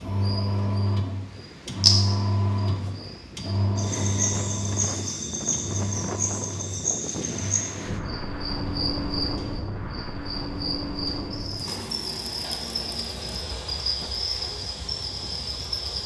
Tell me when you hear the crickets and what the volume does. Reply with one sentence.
You can hear the crickets from 0.0 to 16.0 s, getting quieter.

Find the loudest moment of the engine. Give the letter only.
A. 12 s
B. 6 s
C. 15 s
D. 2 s
D.